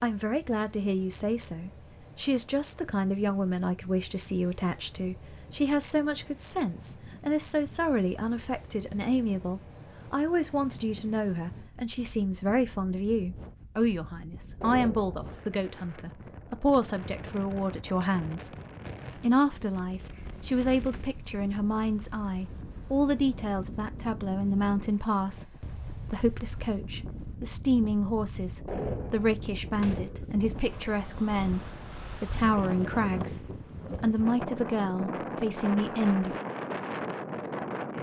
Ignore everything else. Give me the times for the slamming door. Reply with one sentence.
The slamming door can be heard from 14.6 to 15.3 s and from 28.6 to 30.4 s.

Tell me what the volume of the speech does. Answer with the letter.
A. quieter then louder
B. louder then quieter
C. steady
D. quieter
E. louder
C.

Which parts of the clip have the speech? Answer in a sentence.
The speech can be heard from 0.0 to 18.5 s and from 19.1 to 36.4 s.